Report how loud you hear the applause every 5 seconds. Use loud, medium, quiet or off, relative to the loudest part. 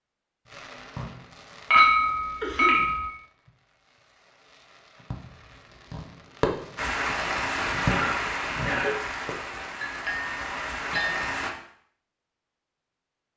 off, loud, loud.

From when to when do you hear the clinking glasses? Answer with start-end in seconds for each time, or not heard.
1.7-3.1, 9.8-11.3.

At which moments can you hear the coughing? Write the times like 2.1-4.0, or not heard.
2.4-2.9, 7.8-8.9.